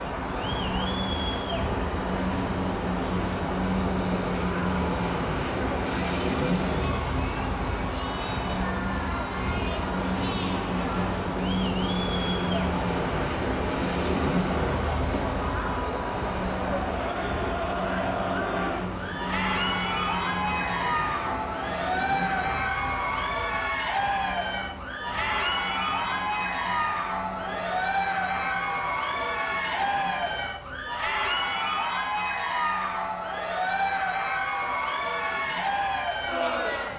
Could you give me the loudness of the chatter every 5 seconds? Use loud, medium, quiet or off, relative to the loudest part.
medium, medium, medium, loud, loud, loud, loud, loud.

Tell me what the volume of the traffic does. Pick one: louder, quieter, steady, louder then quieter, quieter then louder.
quieter.